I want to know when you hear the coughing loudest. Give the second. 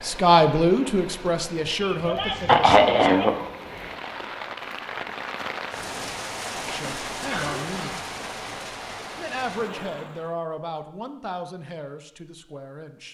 3 s.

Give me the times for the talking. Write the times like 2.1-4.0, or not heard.
0.0-3.1, 6.7-8.1, 9.2-13.0.